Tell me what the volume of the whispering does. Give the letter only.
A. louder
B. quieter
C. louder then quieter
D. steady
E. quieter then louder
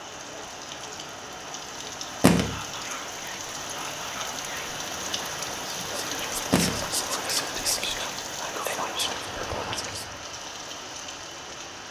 A.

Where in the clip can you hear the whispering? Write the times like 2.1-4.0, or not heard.
2.4-10.1.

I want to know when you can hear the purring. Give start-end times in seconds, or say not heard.
not heard.